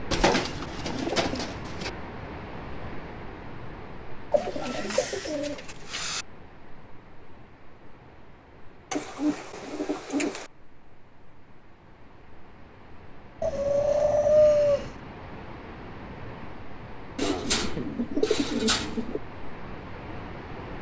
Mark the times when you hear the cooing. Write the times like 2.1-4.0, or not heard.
0.1-1.9, 4.3-6.2, 8.9-10.5, 13.4-14.9, 17.1-19.2.